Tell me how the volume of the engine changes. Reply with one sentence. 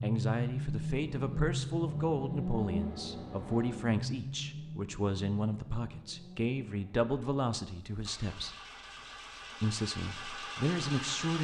The volume of the engine goes down, then up.